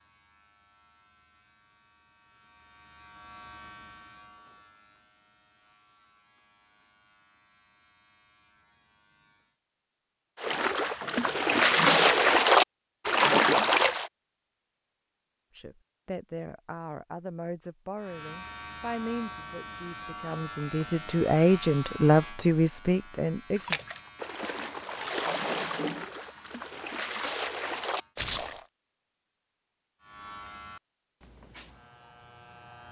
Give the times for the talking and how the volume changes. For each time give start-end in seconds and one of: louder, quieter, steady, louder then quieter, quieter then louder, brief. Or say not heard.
15.6-23.8 louder.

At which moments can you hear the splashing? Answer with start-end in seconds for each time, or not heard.
10.4-14.1, 23.6-28.6.